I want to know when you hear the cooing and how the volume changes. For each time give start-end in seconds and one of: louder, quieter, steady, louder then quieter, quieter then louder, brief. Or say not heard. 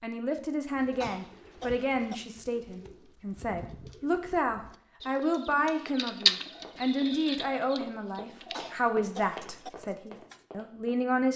0.8-10.3 louder then quieter.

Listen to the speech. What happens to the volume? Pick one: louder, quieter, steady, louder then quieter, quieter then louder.
steady.